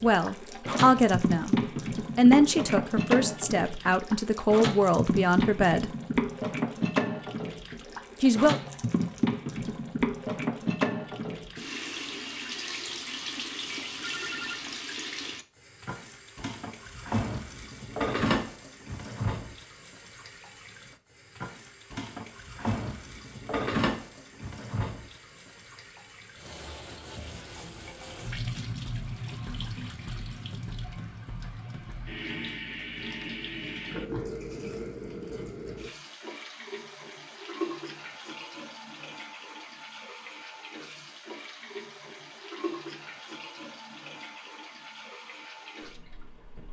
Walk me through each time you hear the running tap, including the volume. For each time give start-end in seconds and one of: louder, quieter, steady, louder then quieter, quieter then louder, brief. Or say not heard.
0.0-46.6 quieter.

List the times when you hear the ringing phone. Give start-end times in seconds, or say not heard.
13.0-14.8.